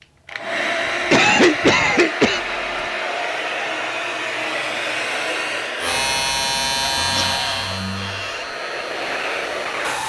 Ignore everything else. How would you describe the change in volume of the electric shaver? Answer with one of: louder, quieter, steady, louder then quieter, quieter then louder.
quieter.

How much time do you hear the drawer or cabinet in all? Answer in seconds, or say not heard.
2 s.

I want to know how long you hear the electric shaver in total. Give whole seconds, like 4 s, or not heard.
4 s.